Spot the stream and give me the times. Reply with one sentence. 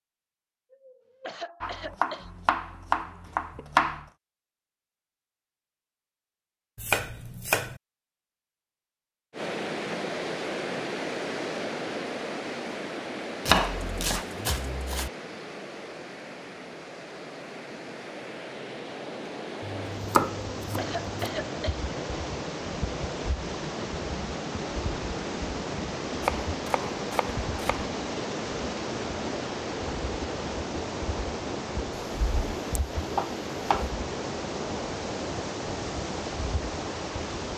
The stream can be heard from 9.3 to 37.5 s.